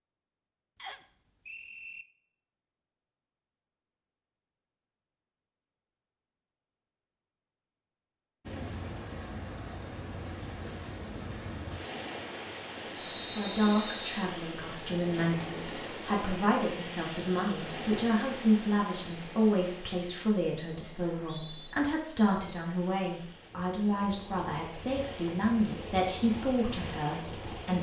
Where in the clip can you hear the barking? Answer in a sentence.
You can't hear the barking here.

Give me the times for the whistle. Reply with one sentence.
The whistle can be heard from 0.8 to 2.0 s, from 12.9 to 14.2 s and from 21.0 to 21.8 s.